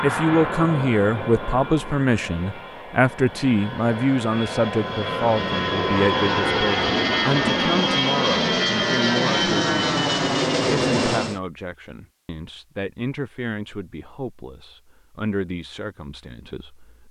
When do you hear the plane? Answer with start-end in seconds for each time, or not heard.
0.0-11.4.